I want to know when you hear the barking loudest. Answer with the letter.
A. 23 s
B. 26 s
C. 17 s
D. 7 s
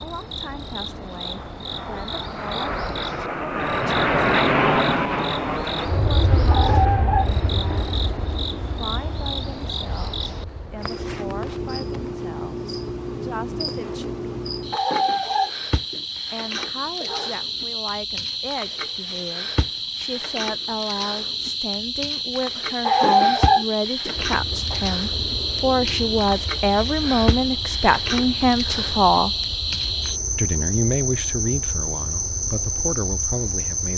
A.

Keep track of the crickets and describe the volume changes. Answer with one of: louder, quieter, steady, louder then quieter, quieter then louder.
louder.